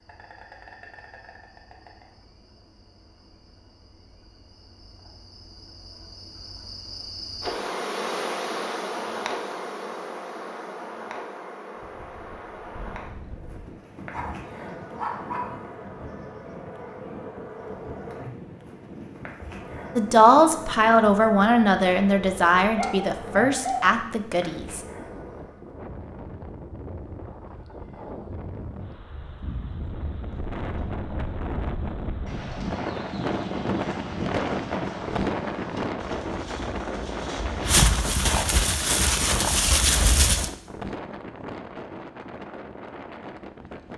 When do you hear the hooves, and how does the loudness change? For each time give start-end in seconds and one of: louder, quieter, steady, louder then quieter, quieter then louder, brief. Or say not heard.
29.1-40.5 louder.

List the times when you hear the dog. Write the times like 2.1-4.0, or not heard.
14.1-15.6, 22.6-23.9.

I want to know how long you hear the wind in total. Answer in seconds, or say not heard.
32 s.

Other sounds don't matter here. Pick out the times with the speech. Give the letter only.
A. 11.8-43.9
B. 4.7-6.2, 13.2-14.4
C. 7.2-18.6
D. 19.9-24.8
D.